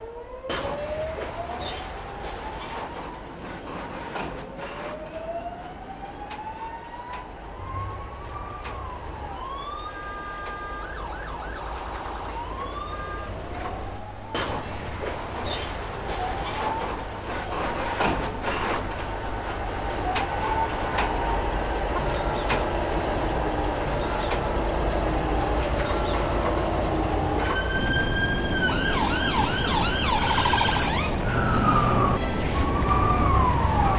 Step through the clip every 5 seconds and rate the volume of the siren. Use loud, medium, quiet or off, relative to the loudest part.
quiet, quiet, quiet, quiet, medium, loud, loud.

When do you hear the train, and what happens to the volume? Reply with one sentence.
You can hear the train from 0.0 to 33.9 s, getting louder.